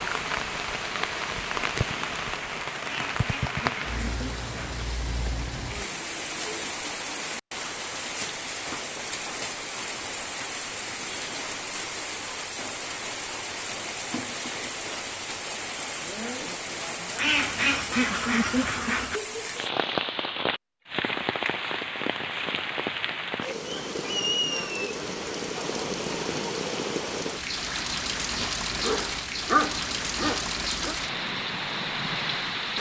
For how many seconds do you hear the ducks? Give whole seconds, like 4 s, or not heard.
4 s.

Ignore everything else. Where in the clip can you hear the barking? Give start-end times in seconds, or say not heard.
28.7-30.9.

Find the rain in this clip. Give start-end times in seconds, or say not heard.
0.0-32.7.